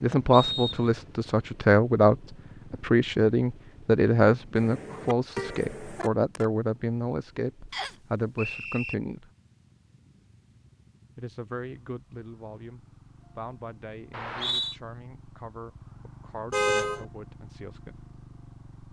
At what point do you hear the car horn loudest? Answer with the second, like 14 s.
17 s.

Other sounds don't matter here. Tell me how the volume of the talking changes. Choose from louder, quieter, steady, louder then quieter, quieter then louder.
quieter.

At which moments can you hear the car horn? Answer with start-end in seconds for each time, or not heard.
4.5-6.5, 16.5-17.1.